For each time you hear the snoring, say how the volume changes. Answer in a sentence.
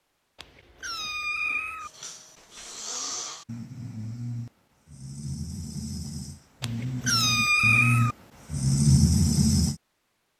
The snoring can be heard from 2.0 to 9.8 s, getting louder.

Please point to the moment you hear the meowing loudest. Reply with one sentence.
The volume of the meowing peaks at 8 seconds.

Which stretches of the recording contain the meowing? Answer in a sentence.
You can hear the meowing from 0.3 to 1.9 s and from 6.6 to 8.2 s.